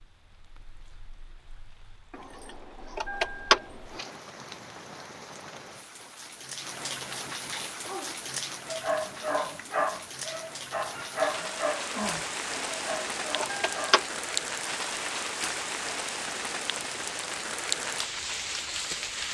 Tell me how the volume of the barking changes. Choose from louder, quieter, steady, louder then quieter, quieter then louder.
quieter.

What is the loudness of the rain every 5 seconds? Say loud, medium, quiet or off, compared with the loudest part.
quiet, medium, loud, loud.